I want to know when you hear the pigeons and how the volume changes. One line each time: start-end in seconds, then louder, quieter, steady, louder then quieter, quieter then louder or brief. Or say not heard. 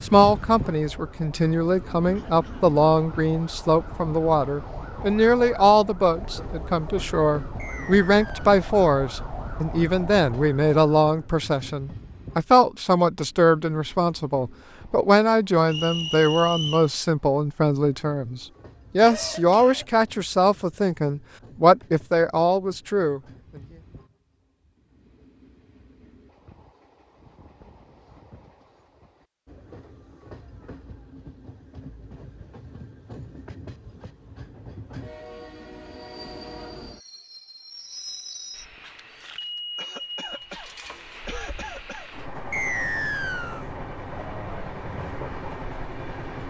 not heard.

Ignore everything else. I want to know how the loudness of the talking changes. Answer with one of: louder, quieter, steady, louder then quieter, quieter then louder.
steady.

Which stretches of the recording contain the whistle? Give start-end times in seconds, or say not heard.
7.5-8.6, 15.7-16.9, 42.5-43.6.